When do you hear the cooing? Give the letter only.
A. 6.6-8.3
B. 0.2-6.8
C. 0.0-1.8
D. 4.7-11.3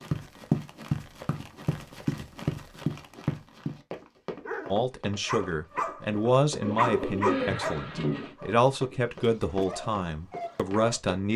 A.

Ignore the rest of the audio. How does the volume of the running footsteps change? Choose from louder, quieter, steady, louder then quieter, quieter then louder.
quieter.